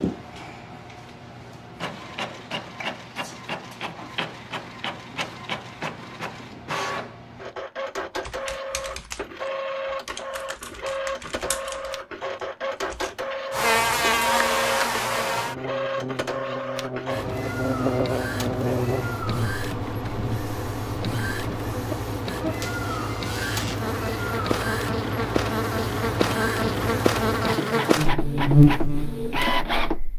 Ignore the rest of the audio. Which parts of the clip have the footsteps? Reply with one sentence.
The footsteps can't be heard in this clip.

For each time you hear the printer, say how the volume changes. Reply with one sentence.
You can hear the printer from 0.0 to 30.0 s, getting louder.